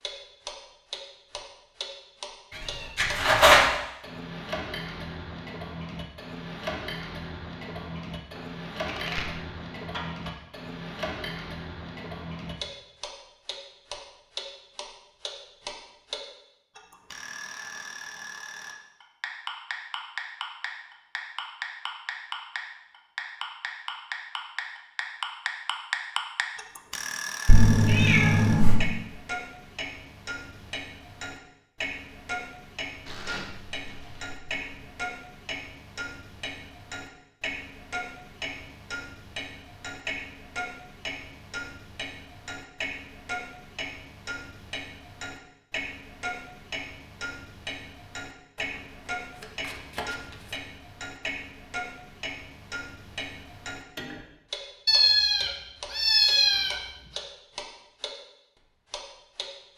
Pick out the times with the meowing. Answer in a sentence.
The meowing can be heard from 3.0 to 3.6 s, from 27.4 to 28.9 s and from 54.9 to 56.8 s.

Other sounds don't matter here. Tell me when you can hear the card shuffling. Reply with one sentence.
You can hear the card shuffling from 8.3 to 10.3 s, from 33.0 to 34.9 s and from 48.5 to 50.6 s.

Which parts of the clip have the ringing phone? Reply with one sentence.
The ringing phone can't be heard in this clip.